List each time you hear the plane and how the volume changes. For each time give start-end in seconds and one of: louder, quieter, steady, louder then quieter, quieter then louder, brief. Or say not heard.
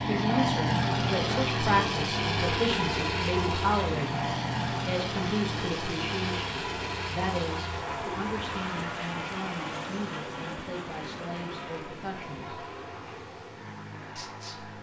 0.0-14.7 quieter.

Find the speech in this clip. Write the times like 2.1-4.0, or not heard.
0.1-4.2, 4.8-12.7, 14.2-14.7.